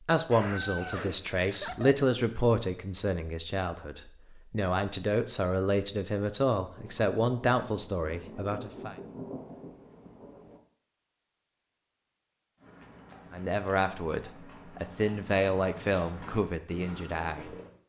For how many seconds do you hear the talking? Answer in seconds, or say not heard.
13 s.